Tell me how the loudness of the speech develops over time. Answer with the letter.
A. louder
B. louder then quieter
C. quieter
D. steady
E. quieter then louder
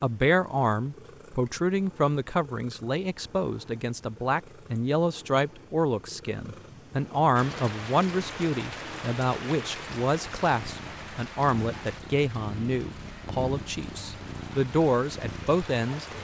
D.